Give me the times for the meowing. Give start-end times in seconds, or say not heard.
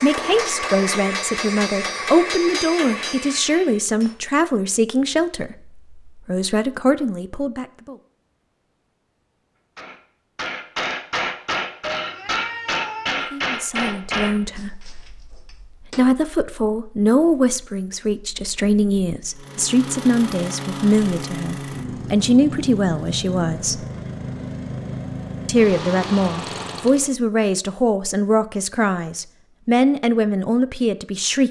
11.9-13.2.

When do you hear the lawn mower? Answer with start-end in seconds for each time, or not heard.
19.4-27.1.